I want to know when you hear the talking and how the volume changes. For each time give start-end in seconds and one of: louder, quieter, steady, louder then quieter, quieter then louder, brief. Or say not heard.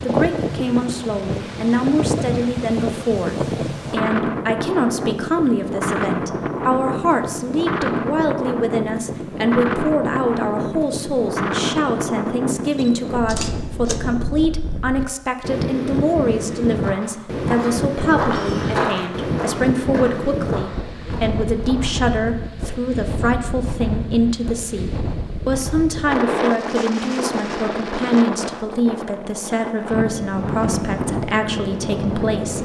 0.0-32.5 steady.